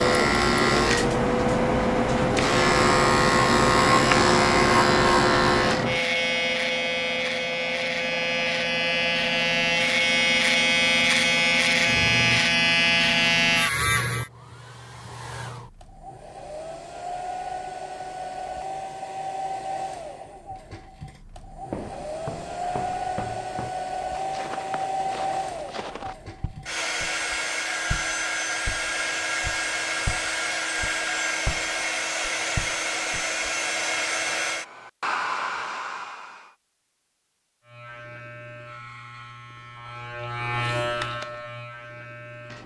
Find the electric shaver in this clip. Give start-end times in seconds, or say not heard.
0.0-14.3, 37.6-42.6.